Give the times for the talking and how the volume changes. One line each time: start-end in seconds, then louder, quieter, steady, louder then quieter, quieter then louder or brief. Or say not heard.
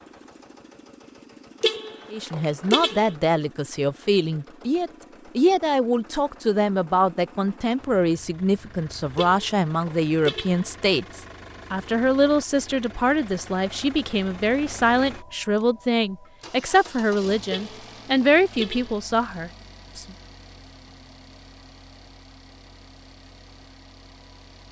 2.1-20.1 steady.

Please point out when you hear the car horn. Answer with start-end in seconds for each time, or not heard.
1.6-3.1, 9.2-10.7, 17.5-19.0.